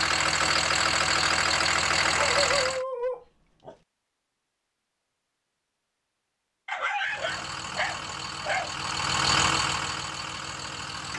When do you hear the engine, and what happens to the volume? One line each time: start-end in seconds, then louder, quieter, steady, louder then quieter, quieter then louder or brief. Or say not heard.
0.0-2.9 brief
7.0-11.1 louder then quieter.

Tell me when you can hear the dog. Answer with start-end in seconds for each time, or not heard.
2.0-3.8, 6.7-8.7.